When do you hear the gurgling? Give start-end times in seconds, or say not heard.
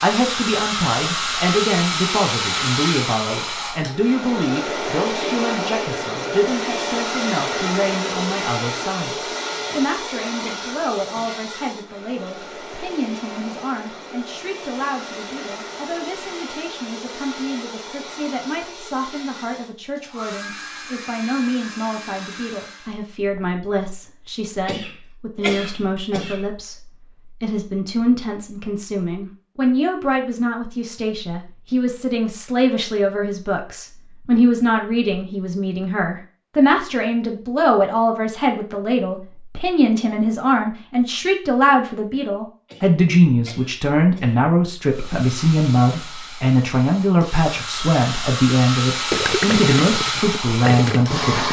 49.1-51.4.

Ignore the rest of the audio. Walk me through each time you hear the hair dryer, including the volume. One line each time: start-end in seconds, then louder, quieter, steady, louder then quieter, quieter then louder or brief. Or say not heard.
0.0-23.0 quieter
44.9-51.4 louder.